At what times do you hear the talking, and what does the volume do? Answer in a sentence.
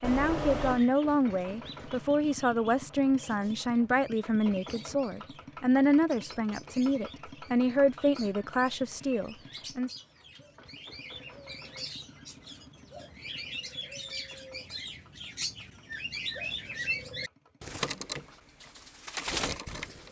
You can hear the talking from 0.0 to 9.9 s, at a steady volume.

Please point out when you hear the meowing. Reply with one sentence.
You can hear the meowing from 0.0 to 0.8 s.